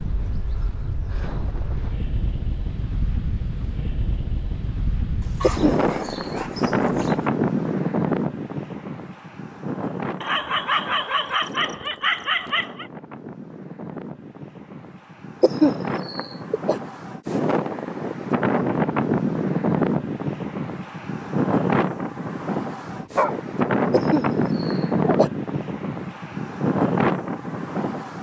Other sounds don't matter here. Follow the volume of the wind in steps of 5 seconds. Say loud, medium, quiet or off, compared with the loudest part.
medium, loud, quiet, loud, loud, loud.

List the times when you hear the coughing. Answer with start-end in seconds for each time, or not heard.
5.4-6.3, 15.4-16.8, 23.9-25.3.